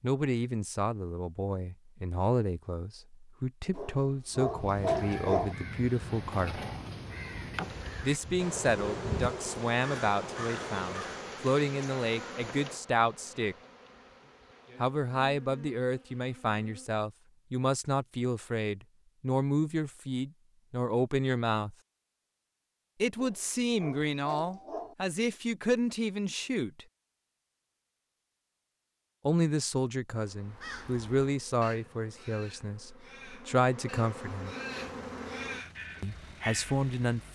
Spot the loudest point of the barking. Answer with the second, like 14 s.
5 s.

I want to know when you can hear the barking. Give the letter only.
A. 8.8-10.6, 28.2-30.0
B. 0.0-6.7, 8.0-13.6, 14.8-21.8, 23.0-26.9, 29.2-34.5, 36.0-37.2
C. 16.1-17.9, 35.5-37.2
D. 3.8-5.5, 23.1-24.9
D.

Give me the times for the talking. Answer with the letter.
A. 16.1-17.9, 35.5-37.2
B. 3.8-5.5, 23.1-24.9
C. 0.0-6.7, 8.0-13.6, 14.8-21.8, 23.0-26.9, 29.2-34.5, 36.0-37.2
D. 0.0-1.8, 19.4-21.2
C.